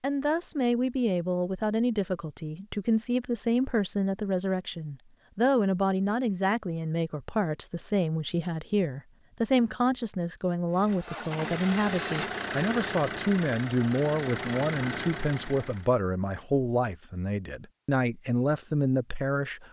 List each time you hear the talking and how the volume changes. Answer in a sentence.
The talking can be heard from 0.0 to 19.6 s, at a steady volume.